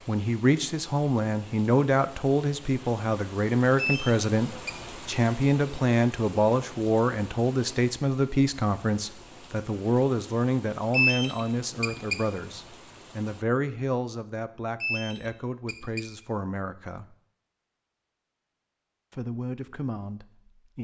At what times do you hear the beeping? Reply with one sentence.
You can hear the beeping from 3.8 to 4.8 s, from 10.9 to 12.2 s and from 14.8 to 16.1 s.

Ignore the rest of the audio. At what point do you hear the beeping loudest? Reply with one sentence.
The loudest moment of the beeping is at 11 seconds.